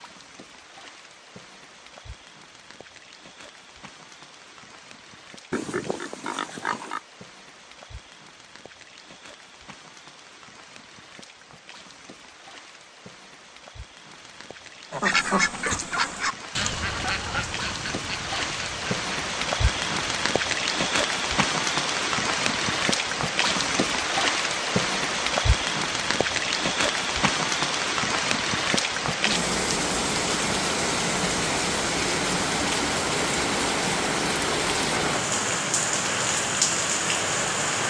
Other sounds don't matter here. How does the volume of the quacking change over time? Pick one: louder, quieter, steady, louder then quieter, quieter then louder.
quieter.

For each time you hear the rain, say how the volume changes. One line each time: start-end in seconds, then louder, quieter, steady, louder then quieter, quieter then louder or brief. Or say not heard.
0.0-37.8 louder.